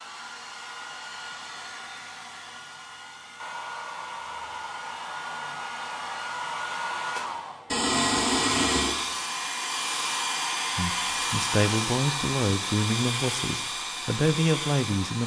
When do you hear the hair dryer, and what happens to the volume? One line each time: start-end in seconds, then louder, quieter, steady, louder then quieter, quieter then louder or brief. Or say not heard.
0.0-15.2 louder.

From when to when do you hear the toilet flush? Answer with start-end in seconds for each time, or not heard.
7.7-8.9.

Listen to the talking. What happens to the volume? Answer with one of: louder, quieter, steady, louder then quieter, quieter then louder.
quieter then louder.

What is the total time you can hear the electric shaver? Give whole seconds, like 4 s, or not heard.
not heard.